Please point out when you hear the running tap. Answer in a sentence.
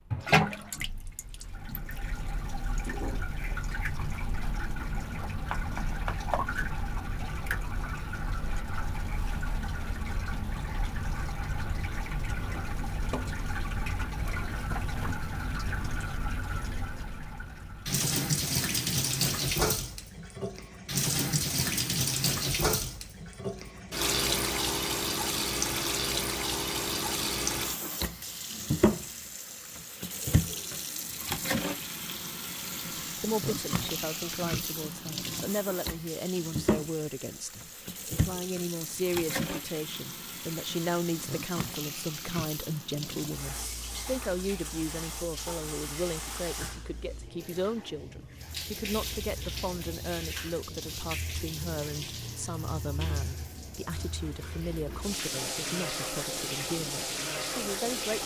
The running tap can be heard from 0.1 to 58.2 s.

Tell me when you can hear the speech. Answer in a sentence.
The speech can be heard from 33.2 to 58.2 s.